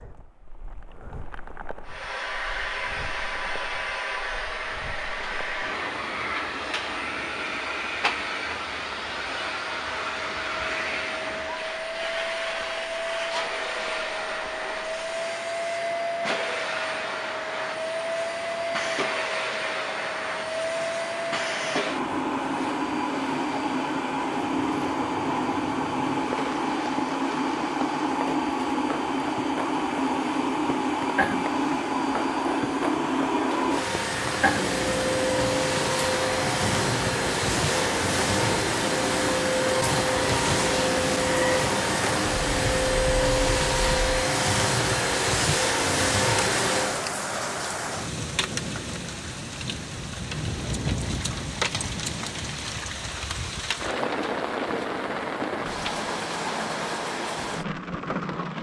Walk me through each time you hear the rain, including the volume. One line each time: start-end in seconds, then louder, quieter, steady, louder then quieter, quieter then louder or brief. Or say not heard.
0.0-58.5 louder.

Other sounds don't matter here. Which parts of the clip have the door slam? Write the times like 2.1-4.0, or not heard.
not heard.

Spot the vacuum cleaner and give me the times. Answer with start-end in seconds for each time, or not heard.
1.9-47.0.